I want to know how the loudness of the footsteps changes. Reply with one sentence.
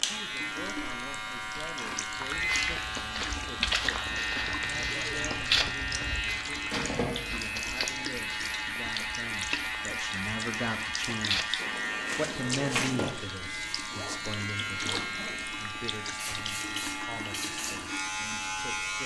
The volume of the footsteps goes down, then up.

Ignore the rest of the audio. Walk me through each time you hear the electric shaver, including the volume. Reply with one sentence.
You can hear the electric shaver from 0.0 to 19.0 s, at a steady volume.